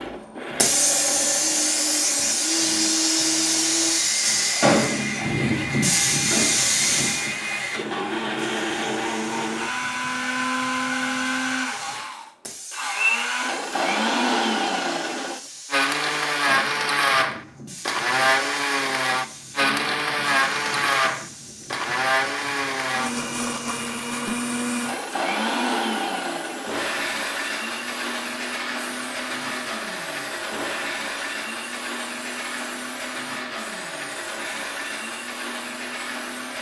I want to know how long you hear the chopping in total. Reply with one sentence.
The chopping can't be heard in this clip.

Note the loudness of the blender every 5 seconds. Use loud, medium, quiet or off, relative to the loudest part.
medium, medium, loud, loud, loud, medium, medium, medium.